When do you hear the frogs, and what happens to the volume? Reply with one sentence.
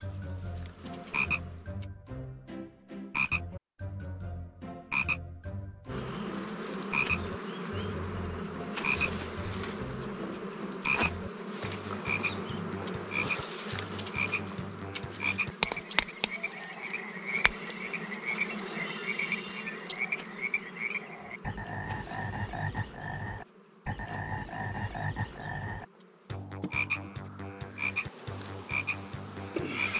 The frogs can be heard from 0.0 to 29.9 s, at a steady volume.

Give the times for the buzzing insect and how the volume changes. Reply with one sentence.
The buzzing insect can be heard briefly from 0.0 to 1.9 s; and from 5.8 to 29.9 s, getting quieter.